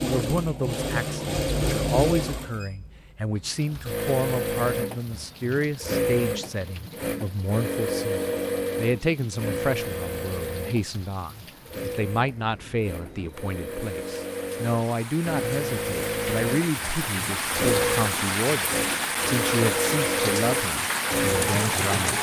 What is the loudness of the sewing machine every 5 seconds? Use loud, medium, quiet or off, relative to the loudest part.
loud, loud, medium, loud, loud.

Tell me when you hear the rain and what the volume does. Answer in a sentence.
The rain can be heard from 3.4 to 22.1 s, getting louder.